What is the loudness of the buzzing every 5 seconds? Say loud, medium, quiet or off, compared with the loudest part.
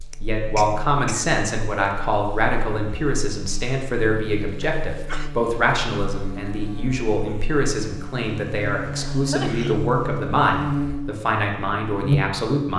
quiet, medium, loud.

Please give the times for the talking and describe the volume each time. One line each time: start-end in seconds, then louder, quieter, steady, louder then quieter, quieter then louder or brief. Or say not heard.
0.2-12.7 steady.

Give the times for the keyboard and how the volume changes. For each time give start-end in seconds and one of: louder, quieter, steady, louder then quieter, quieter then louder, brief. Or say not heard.
not heard.